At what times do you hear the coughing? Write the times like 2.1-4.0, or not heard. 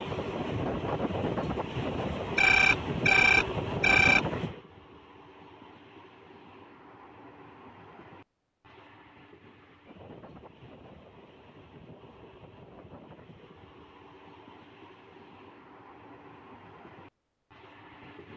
not heard.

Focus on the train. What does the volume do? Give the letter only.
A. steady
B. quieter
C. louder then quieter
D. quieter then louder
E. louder
B.